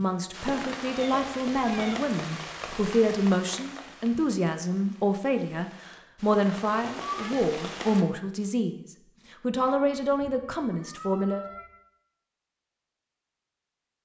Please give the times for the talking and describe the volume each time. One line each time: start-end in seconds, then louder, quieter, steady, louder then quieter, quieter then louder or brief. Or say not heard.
0.0-11.4 steady.